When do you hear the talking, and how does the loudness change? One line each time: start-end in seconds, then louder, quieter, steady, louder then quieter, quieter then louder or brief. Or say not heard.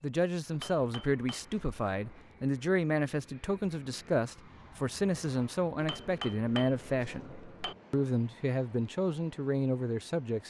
0.0-10.4 steady.